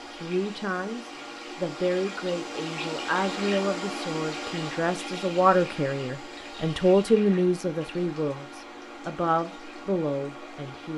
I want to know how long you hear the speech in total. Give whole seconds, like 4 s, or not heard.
11 s.